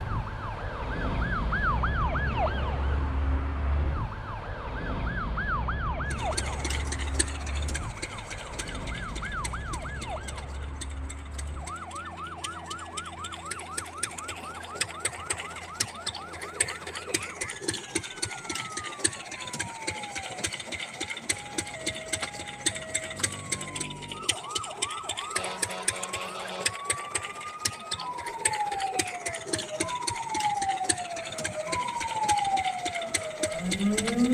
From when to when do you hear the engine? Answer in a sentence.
The engine can be heard from 6.1 to 34.2 s.